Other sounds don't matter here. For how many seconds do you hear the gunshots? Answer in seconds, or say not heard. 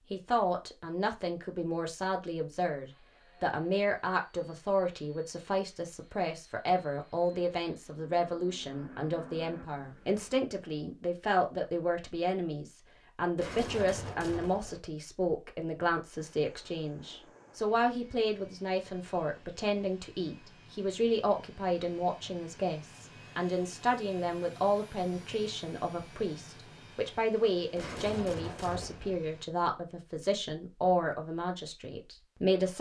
3 s.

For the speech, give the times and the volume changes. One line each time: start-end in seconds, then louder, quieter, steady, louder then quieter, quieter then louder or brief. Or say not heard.
0.1-32.7 steady.